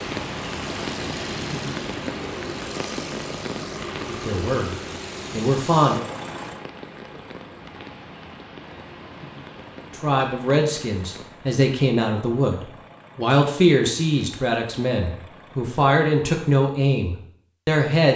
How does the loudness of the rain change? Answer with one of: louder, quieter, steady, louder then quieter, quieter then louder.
quieter.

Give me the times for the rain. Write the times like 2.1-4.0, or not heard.
0.0-11.3.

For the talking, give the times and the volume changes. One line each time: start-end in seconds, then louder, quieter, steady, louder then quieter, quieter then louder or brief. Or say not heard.
4.0-6.0 brief
9.9-18.1 steady.